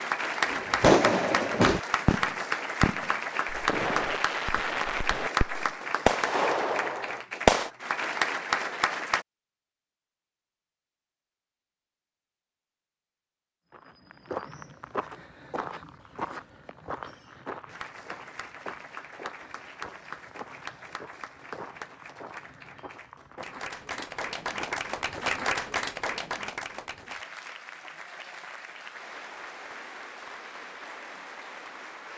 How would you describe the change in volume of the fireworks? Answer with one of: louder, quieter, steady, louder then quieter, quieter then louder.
quieter then louder.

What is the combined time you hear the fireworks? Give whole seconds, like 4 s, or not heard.
7 s.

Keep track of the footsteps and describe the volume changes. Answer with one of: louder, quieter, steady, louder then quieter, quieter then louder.
quieter.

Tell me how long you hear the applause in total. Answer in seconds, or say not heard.
24 s.